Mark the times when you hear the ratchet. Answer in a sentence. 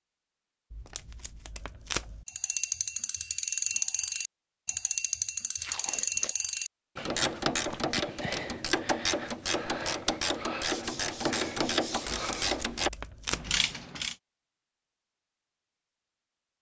The ratchet can be heard from 2.2 to 14.2 s.